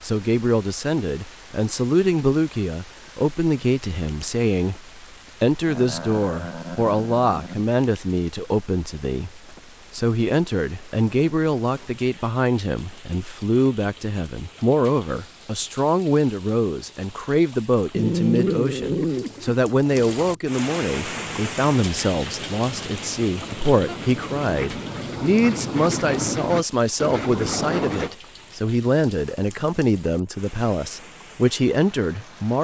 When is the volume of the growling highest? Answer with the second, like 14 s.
18 s.